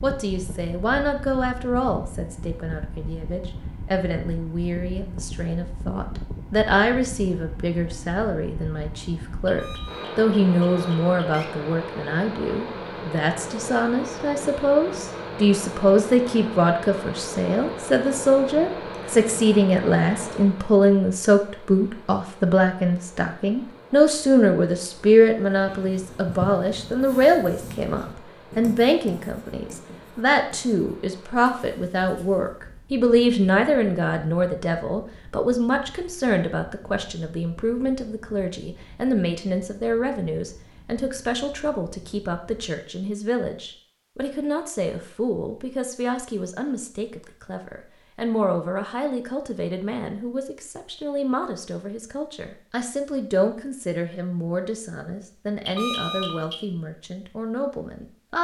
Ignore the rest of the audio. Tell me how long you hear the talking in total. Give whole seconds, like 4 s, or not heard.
58 s.